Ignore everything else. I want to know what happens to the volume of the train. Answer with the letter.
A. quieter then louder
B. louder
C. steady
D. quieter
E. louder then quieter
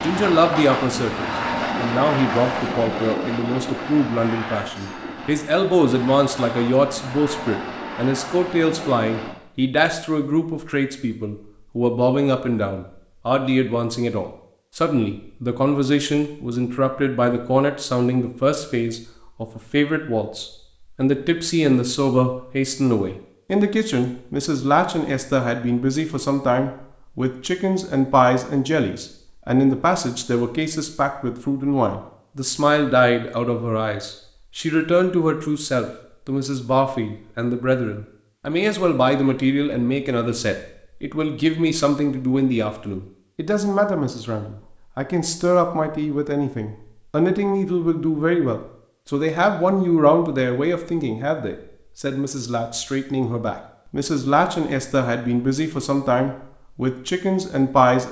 D.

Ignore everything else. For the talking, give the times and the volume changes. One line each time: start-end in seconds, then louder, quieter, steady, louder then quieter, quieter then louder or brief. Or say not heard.
0.0-58.0 steady.